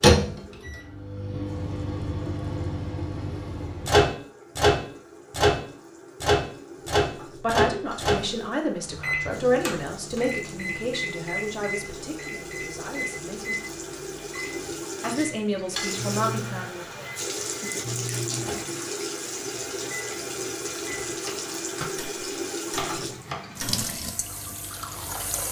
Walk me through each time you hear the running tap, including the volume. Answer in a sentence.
You can hear the running tap from 0.2 to 25.4 s, getting louder.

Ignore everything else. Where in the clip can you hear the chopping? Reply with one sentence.
The chopping can be heard from 22.7 to 24.0 s.